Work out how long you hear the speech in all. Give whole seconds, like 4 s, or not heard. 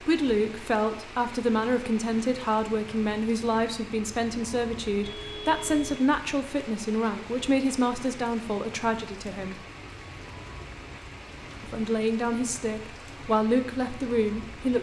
13 s.